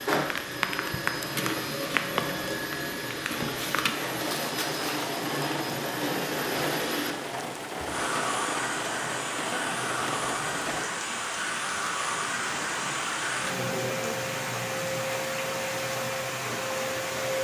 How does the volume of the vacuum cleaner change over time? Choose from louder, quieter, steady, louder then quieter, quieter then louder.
steady.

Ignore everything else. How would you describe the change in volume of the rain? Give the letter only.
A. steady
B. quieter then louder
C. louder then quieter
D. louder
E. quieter
A.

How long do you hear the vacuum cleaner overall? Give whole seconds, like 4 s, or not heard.
17 s.